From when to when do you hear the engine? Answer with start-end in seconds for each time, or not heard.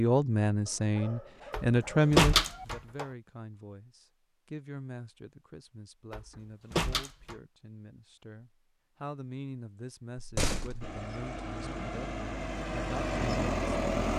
10.8-14.1.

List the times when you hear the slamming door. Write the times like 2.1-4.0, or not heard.
1.5-3.0, 6.1-7.3, 10.2-11.0.